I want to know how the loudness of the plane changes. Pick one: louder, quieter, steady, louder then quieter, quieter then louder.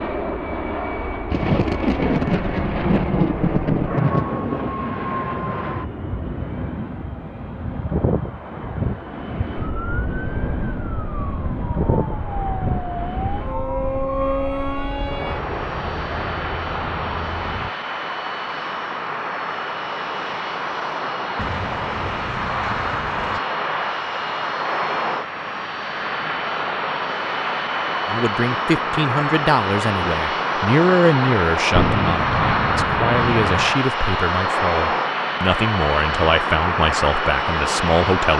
louder.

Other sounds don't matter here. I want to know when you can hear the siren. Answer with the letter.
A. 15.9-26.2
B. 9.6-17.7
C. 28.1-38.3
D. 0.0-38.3
B.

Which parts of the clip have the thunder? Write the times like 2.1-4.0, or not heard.
1.3-4.7, 21.4-23.4, 31.8-33.8.